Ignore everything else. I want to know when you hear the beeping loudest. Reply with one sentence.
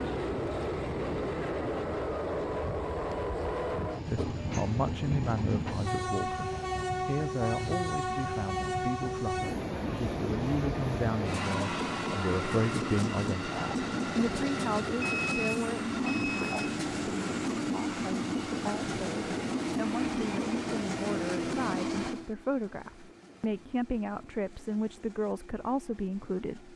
The loudest moment of the beeping is at 15 seconds.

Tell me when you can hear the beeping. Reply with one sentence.
The beeping can be heard from 15.0 to 16.6 s.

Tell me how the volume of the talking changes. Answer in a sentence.
The loudness of the talking stays about the same.